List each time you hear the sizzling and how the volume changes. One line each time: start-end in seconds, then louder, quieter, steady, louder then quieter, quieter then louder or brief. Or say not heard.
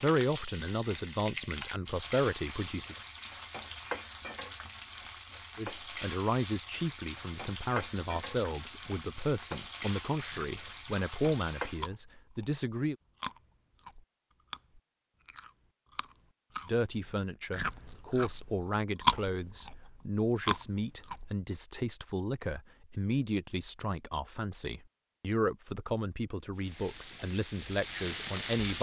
0.0-11.9 steady
26.6-28.7 brief.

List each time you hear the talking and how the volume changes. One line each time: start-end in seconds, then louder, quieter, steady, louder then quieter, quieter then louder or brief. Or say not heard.
0.0-3.0 brief
5.5-12.9 steady
16.6-28.7 steady.